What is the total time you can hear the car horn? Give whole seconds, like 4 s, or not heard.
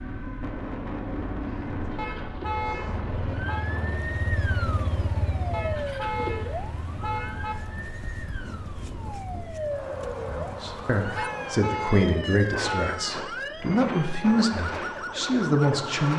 6 s.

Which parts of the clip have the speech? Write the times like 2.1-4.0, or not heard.
10.2-16.1.